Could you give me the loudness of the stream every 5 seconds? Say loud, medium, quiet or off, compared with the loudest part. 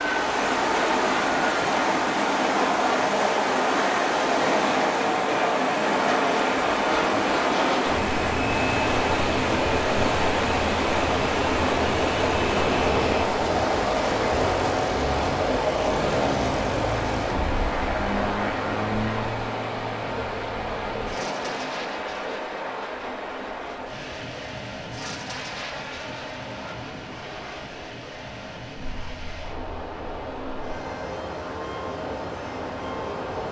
loud, loud, loud, loud, medium, quiet, medium.